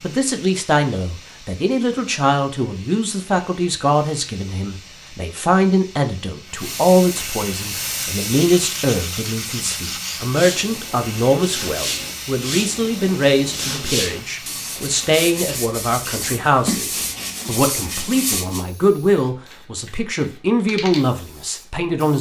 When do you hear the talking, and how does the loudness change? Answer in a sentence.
You can hear the talking from 0.0 to 22.1 s, at a steady volume.